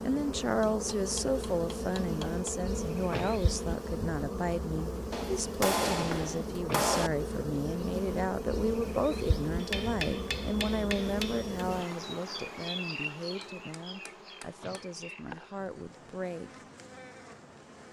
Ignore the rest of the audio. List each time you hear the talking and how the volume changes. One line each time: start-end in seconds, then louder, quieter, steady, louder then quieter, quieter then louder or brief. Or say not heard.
0.0-16.5 quieter.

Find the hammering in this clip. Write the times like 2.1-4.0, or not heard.
0.6-2.5, 5.1-7.1, 9.6-11.7, 13.4-14.9.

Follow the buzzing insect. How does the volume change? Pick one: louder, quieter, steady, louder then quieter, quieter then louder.
quieter.